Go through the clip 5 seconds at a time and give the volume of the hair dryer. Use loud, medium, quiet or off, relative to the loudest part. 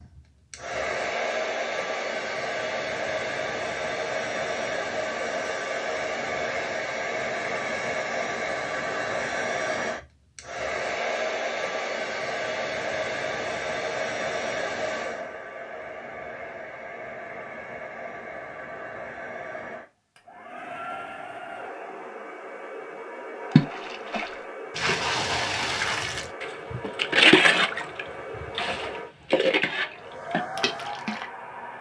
loud, loud, loud, medium, medium, medium, medium.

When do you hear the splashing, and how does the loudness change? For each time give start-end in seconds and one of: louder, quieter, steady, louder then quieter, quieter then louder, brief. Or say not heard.
23.5-31.2 louder then quieter.